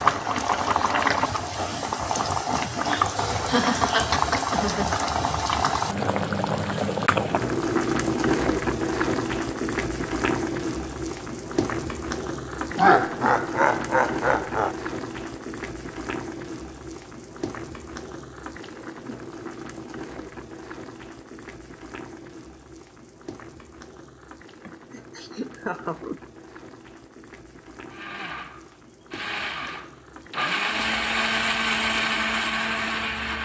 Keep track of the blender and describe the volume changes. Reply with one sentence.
The volume of the blender goes up.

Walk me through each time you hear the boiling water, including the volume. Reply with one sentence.
The boiling water can be heard from 0.0 to 33.4 s, getting quieter.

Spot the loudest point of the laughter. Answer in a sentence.
The volume of the laughter peaks at 13 seconds.